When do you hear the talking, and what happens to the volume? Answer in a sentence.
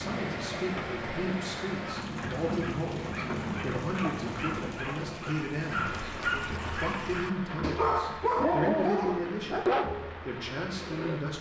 The talking can be heard from 0.0 to 11.3 s, at a steady volume.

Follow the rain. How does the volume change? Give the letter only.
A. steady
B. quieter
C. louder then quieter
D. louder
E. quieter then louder
B.